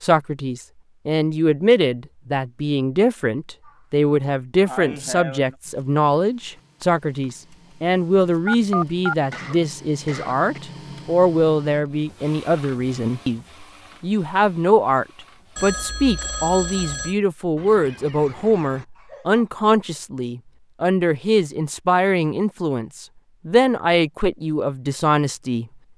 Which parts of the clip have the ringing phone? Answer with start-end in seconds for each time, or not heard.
8.4-9.3, 15.6-17.1.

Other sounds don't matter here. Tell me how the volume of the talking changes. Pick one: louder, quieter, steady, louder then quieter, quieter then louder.
steady.